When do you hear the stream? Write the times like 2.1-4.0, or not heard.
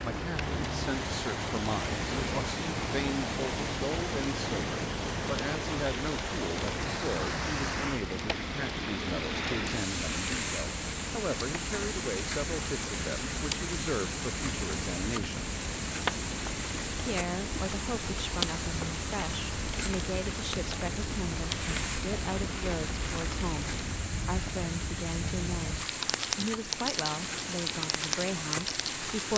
0.0-29.3.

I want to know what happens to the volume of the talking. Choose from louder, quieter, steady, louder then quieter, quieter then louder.
steady.